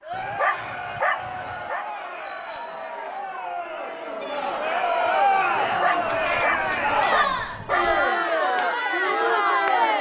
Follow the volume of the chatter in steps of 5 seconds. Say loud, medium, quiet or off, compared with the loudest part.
medium, loud.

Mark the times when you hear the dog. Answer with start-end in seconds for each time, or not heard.
0.1-1.9, 5.5-7.8.